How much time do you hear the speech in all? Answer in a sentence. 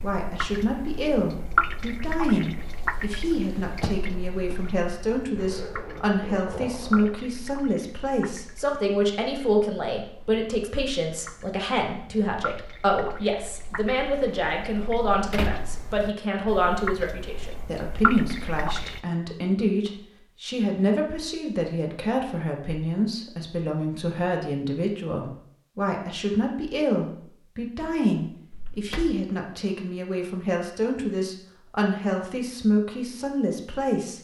You can hear the speech for 34 seconds altogether.